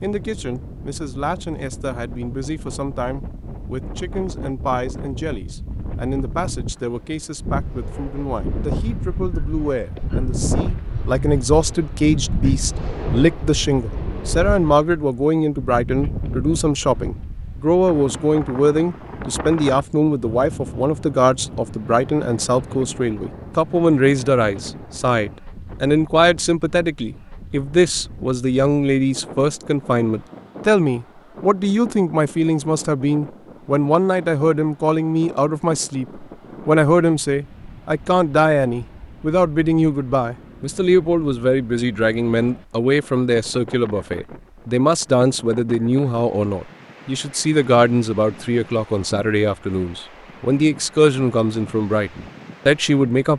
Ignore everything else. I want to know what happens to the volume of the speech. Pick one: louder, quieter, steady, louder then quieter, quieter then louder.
louder.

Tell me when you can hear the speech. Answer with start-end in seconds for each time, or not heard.
0.0-53.3.